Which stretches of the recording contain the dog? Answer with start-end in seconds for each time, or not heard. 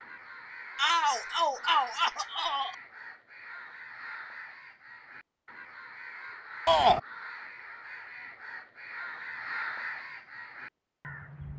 not heard.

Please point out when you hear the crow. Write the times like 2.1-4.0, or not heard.
0.0-11.5.